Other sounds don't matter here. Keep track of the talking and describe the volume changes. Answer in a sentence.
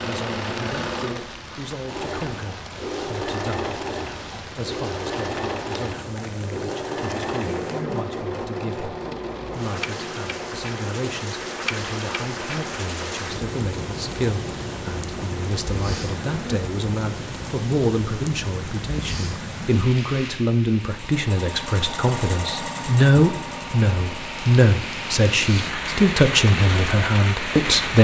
The volume of the talking goes up.